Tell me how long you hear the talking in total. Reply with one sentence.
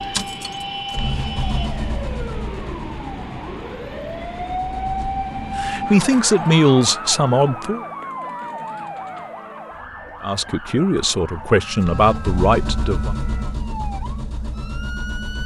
You can hear the talking for 5 seconds altogether.